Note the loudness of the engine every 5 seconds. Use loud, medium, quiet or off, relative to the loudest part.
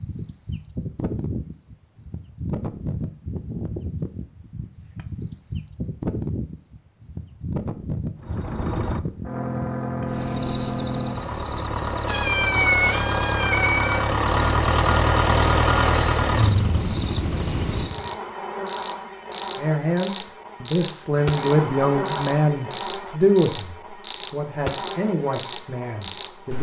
off, medium, loud, loud, off, off.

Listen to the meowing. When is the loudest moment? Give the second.
13 s.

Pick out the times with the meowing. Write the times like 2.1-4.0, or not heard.
12.1-14.2.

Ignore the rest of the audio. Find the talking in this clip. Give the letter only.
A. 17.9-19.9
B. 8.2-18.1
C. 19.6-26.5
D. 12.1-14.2
C.